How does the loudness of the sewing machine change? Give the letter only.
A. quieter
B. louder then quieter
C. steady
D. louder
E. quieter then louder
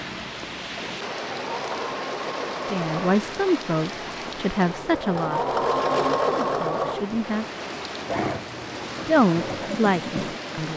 B.